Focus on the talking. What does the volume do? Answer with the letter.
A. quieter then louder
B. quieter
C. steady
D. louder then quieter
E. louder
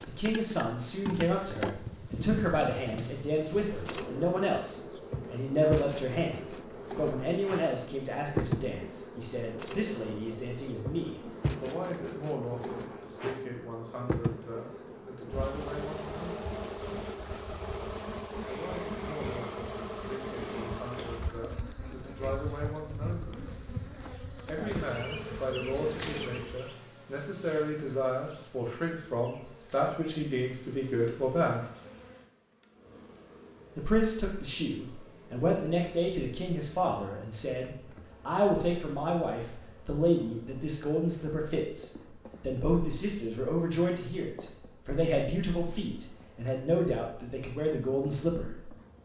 A.